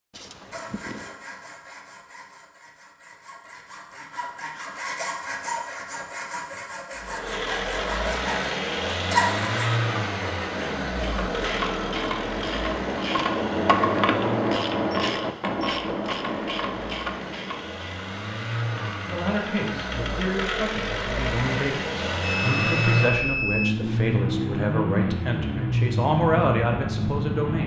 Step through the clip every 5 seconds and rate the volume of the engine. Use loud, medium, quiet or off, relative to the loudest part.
off, loud, medium, medium, loud, loud.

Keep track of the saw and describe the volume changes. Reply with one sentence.
The loudness of the saw goes up.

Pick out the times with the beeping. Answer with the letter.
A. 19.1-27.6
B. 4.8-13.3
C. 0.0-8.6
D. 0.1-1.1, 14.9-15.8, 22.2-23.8
D.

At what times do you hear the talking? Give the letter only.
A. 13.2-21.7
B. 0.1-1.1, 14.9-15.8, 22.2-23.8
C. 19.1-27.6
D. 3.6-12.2
C.